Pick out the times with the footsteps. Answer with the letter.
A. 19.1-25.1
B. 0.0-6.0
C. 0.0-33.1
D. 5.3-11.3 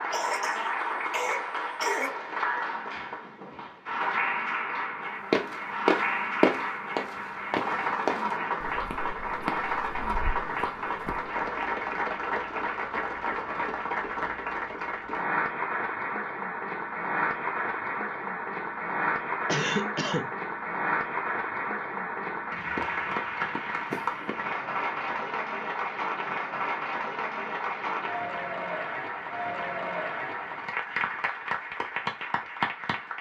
D.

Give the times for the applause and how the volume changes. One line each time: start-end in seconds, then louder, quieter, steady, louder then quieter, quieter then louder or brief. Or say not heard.
0.0-33.1 steady.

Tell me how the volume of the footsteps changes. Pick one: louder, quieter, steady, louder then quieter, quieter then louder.
quieter.